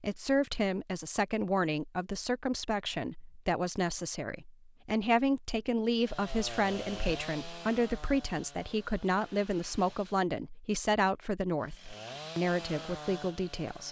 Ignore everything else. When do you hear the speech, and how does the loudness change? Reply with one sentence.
The speech can be heard from 0.0 to 13.8 s, at a steady volume.